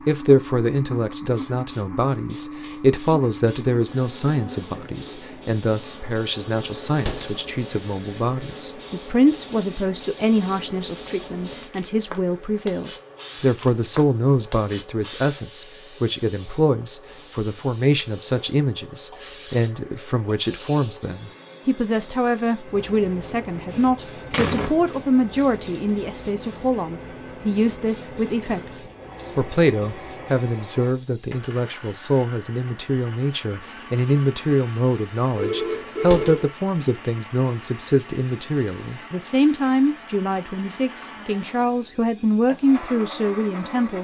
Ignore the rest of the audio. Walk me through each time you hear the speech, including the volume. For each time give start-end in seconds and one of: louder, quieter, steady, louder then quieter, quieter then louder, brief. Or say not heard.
0.1-43.9 steady.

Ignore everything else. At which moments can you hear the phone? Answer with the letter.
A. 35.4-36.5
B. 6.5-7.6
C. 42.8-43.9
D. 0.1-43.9
A.